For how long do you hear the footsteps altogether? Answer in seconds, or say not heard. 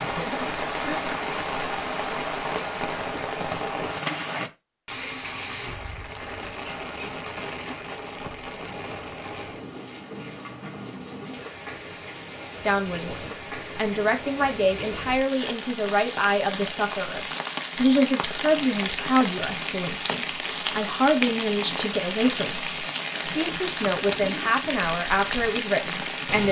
not heard.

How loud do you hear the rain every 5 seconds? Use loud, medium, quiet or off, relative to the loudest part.
loud, medium, medium, loud, loud, loud.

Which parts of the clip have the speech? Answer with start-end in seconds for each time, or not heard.
12.7-26.4.